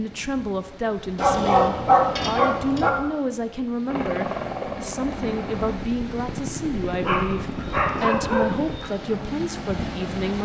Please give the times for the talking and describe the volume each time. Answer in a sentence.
You can hear the talking from 0.0 to 10.4 s, at a steady volume.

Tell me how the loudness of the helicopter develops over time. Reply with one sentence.
The volume of the helicopter goes down.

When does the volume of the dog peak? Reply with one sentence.
The loudest moment of the dog is at 2 seconds.